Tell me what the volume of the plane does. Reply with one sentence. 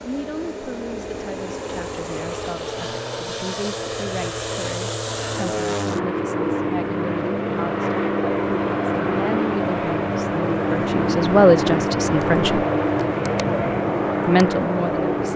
The loudness of the plane goes up.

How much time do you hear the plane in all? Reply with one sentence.
The plane can be heard for 15 seconds in total.